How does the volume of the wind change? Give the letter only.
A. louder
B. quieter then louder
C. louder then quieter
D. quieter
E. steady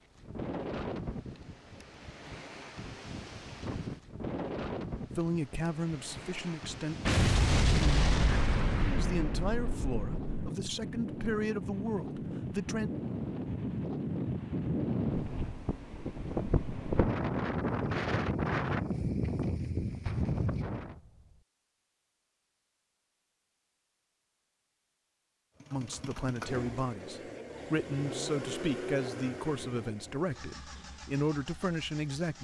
A.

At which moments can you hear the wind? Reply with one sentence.
You can hear the wind from 0.0 to 20.9 s.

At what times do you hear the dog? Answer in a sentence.
The dog can't be heard in this clip.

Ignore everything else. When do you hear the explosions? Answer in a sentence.
You can hear the explosions from 7.0 to 10.5 s and from 20.1 to 21.2 s.